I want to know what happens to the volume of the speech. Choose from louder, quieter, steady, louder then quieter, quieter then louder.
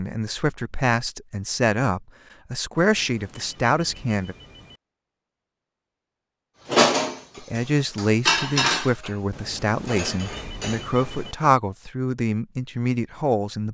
steady.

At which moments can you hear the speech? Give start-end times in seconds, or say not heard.
0.0-4.3, 7.3-13.6.